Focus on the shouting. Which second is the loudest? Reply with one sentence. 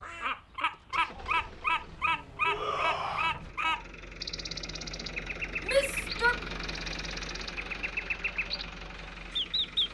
The volume of the shouting peaks at 6 seconds.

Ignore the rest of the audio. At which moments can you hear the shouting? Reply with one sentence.
You can hear the shouting from 2.5 to 3.4 s and from 5.7 to 6.4 s.